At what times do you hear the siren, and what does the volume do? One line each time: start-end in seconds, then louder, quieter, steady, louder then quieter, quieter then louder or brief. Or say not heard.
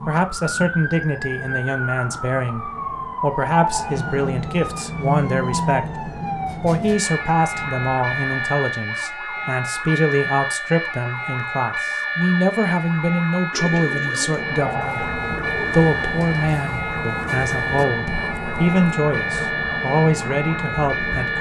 0.0-21.3 steady.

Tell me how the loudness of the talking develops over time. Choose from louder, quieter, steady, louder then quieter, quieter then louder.
steady.